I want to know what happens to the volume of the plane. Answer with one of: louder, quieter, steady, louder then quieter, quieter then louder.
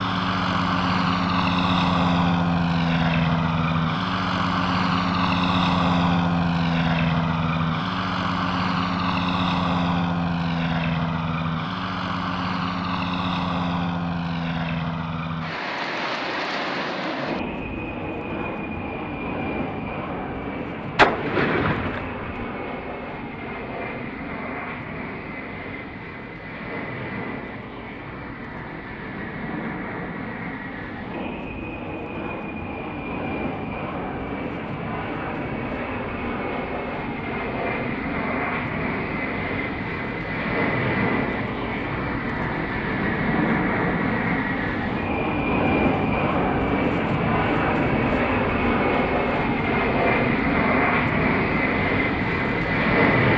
quieter then louder.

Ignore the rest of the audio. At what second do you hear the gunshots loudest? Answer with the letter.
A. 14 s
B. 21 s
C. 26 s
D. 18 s
B.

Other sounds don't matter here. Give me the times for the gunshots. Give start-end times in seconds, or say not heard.
20.9-22.4.